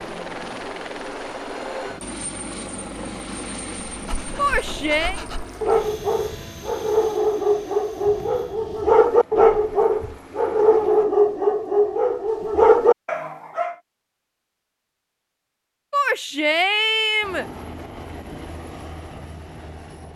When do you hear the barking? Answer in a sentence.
You can hear the barking from 3.9 to 13.8 s.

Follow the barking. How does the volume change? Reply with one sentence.
The volume of the barking goes up.